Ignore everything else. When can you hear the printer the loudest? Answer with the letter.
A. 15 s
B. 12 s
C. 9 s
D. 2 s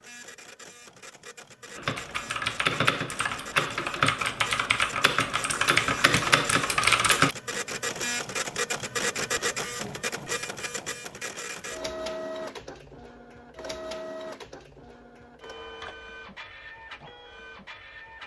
C.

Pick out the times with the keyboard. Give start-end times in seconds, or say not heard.
1.8-7.3.